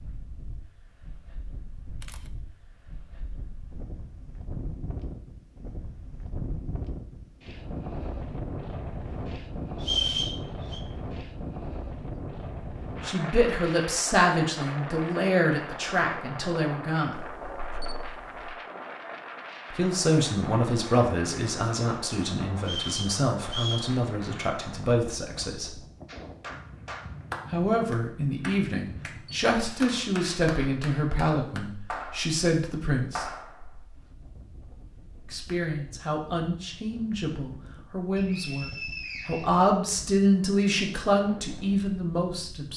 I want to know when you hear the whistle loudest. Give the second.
10 s.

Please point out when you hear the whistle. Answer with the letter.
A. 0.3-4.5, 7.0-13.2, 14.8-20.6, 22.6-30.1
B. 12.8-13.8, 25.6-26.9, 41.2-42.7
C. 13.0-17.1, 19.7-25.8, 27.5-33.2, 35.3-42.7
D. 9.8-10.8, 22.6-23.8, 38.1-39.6
D.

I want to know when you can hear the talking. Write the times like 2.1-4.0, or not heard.
13.0-17.1, 19.7-25.8, 27.5-33.2, 35.3-42.7.